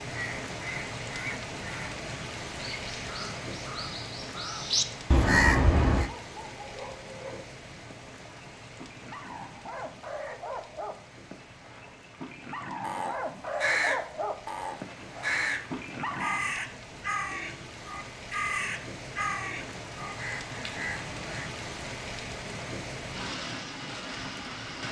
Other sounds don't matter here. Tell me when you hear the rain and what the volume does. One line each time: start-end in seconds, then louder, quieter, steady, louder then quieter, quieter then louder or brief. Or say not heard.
0.0-24.8 quieter then louder.